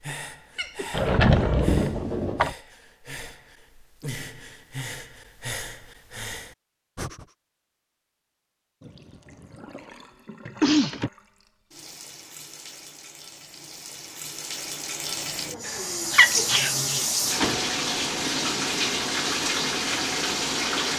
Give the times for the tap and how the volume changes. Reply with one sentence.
The tap can be heard from 8.8 to 20.9 s, getting louder.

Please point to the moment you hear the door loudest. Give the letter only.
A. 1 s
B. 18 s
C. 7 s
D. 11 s
A.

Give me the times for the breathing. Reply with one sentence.
You can hear the breathing from 0.0 to 7.3 s.